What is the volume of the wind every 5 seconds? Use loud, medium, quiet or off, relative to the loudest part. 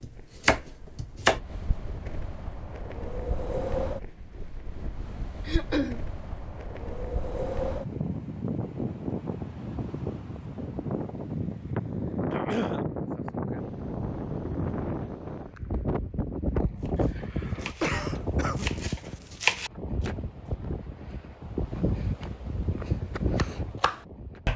medium, loud, loud, loud, loud.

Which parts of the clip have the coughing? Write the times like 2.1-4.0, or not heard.
5.5-6.0, 12.3-12.8, 17.1-18.6.